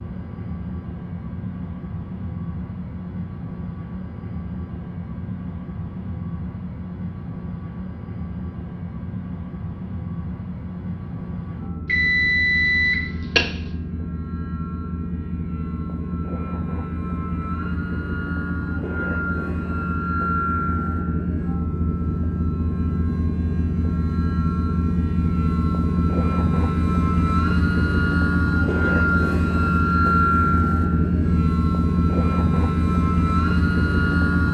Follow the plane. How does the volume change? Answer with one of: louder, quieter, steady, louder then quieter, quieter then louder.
louder.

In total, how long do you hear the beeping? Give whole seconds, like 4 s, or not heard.
2 s.